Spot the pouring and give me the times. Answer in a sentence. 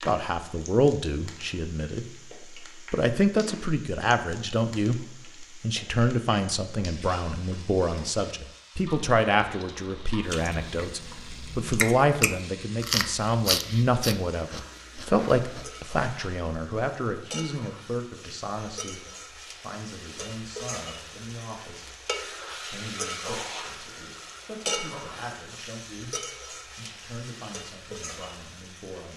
The pouring can't be heard in this clip.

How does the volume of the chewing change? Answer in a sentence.
The loudness of the chewing goes up, then down.